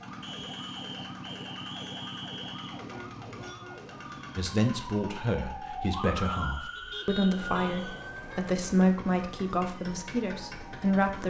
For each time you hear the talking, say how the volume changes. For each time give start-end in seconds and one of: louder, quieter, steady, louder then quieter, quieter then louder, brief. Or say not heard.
4.3-11.2 louder then quieter.